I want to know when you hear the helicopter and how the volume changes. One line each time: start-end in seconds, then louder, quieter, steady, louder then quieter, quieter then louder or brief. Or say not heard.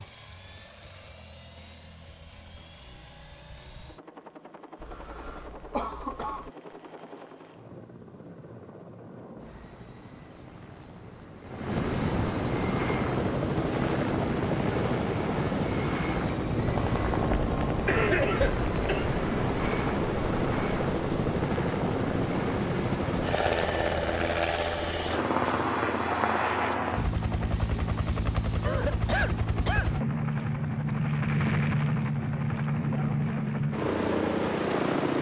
0.0-35.1 louder.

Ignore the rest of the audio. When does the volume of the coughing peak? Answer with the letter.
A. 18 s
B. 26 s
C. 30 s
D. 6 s
A.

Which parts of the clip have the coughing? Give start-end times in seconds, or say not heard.
4.8-6.5, 17.9-19.1, 28.6-29.9.